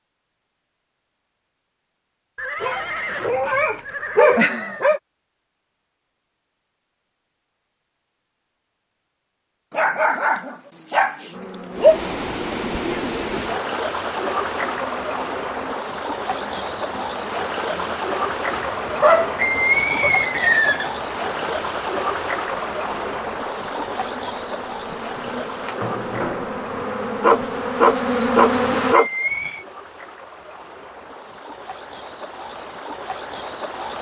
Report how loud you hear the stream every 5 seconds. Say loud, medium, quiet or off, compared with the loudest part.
off, off, loud, loud, loud, medium, medium.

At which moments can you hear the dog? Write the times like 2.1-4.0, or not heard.
2.6-5.0, 9.7-12.0, 18.5-20.1, 27.2-29.1.